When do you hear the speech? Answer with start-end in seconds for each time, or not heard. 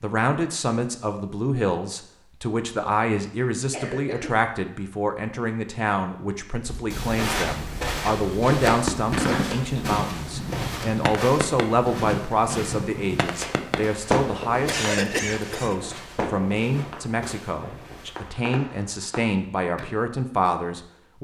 0.0-21.1.